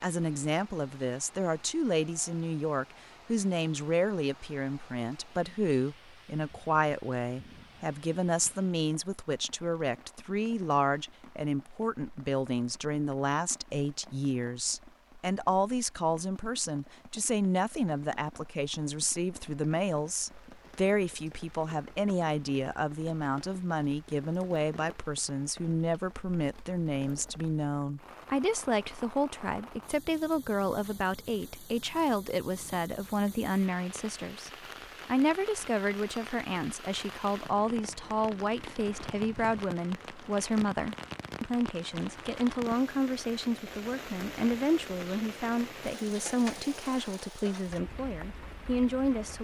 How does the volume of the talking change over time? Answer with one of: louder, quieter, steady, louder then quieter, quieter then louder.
steady.